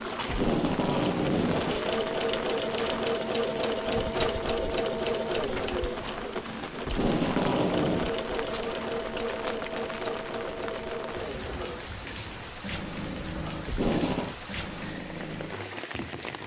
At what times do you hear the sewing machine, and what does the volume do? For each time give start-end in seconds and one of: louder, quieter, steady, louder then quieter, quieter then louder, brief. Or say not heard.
0.0-16.4 quieter.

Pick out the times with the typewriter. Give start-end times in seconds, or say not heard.
not heard.